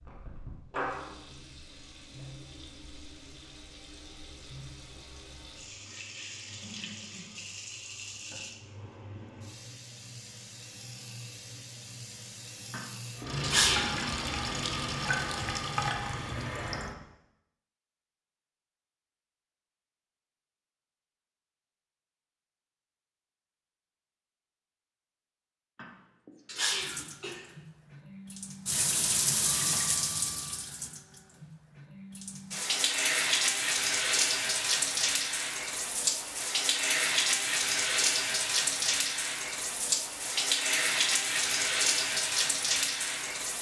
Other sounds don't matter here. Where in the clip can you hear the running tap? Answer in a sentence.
The running tap can be heard from 0.0 to 16.9 s and from 26.8 to 43.5 s.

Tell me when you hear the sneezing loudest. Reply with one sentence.
The volume of the sneezing peaks at 14 seconds.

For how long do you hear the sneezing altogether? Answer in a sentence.
You can hear the sneezing for 3 seconds altogether.